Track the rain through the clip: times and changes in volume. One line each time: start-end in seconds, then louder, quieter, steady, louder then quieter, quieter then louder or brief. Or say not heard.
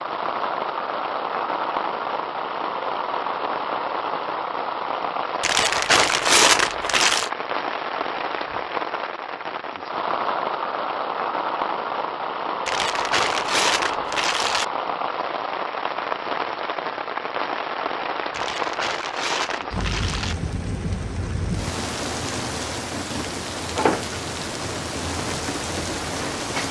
0.0-26.6 steady.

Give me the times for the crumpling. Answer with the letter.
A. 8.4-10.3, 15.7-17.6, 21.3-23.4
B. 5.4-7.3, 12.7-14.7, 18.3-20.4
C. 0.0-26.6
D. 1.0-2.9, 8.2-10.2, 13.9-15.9
B.